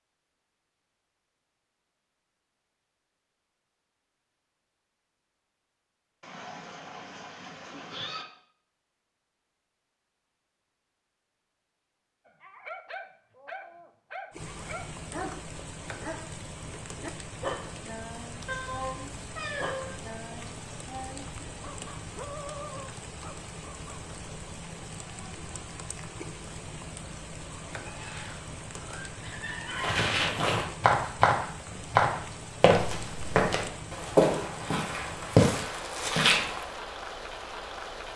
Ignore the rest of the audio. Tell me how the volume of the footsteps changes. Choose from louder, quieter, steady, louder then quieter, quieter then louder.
steady.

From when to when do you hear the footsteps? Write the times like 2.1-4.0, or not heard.
29.7-36.6.